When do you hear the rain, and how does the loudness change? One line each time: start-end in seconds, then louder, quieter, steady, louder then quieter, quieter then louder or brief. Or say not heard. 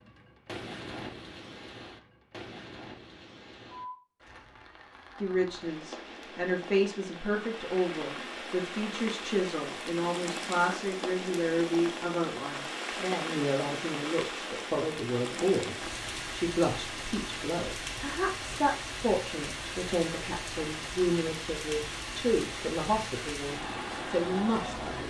0.0-25.0 louder.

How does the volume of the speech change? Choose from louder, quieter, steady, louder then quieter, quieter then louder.
steady.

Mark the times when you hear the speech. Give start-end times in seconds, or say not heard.
5.2-25.0.